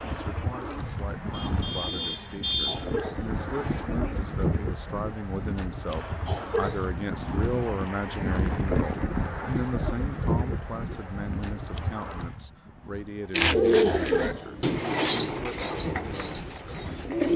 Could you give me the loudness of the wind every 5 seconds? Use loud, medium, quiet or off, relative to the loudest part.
loud, loud, loud, medium.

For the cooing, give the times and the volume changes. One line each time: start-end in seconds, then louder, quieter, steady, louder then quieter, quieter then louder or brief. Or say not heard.
0.0-4.2 louder then quieter
13.3-17.3 quieter.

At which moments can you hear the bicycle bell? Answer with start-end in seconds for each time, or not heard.
not heard.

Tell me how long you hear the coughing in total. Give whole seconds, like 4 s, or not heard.
3 s.